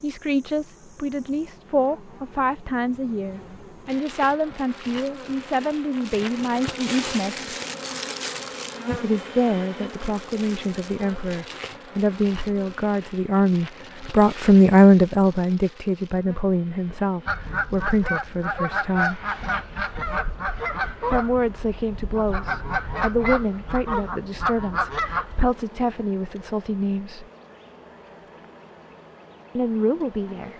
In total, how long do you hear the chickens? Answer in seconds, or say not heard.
8 s.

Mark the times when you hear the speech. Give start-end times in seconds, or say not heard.
0.0-7.5, 9.0-19.2, 21.1-27.2, 29.6-30.5.